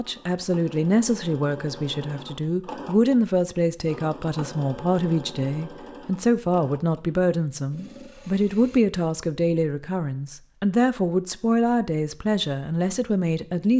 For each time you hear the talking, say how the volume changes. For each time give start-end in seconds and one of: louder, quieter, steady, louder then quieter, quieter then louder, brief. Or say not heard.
0.0-13.7 steady.